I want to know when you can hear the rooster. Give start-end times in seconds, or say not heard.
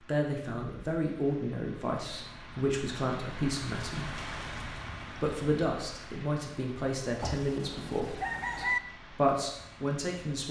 7.2-8.8.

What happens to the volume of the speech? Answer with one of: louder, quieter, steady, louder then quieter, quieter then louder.
steady.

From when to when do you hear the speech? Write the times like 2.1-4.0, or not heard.
0.0-4.3, 5.1-10.4.